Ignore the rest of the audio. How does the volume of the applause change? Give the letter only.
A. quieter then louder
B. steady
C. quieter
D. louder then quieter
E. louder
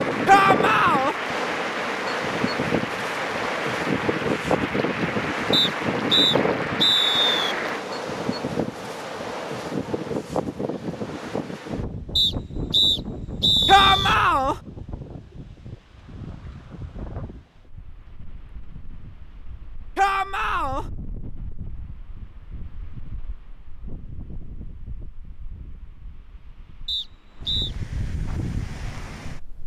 B.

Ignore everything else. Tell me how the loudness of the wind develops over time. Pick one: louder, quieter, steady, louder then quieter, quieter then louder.
quieter then louder.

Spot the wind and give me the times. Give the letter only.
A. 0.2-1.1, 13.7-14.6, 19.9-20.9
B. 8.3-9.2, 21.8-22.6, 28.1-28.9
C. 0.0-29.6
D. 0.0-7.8
C.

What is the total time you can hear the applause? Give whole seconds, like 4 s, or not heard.
8 s.